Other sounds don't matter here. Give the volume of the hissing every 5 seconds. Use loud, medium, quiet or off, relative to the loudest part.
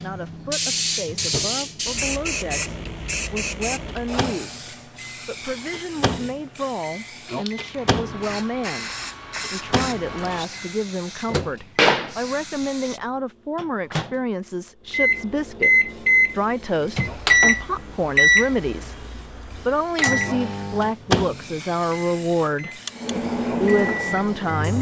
loud, medium, loud, quiet, quiet.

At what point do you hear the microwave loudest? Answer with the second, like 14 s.
18 s.